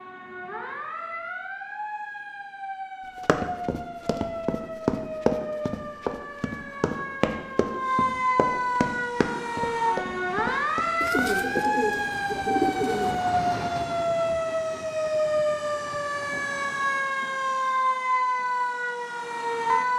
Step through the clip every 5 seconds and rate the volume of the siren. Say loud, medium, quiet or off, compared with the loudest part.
medium, loud, loud, loud.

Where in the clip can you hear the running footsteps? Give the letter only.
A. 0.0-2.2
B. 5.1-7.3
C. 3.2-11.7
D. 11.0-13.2
C.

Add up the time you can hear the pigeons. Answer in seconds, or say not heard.
2 s.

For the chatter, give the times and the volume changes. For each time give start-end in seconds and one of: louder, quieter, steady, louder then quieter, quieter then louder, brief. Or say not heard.
not heard.